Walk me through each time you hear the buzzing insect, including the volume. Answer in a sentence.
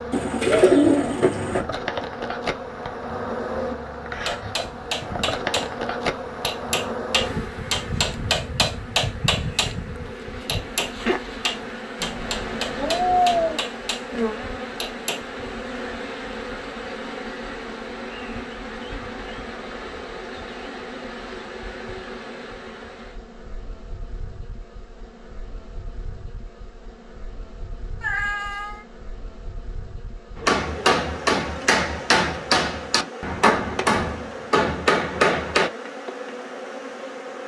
You can hear the buzzing insect from 0.0 to 37.4 s, getting quieter then louder.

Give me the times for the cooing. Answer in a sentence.
The cooing can be heard from 0.1 to 1.6 s.